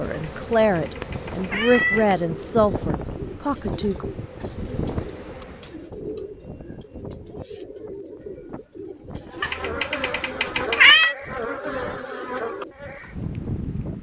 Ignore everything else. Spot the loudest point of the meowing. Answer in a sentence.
The loudest moment of the meowing is at 11 seconds.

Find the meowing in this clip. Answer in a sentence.
The meowing can be heard from 0.3 to 2.1 s and from 9.4 to 11.2 s.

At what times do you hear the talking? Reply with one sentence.
The talking can be heard from 0.0 to 4.0 s.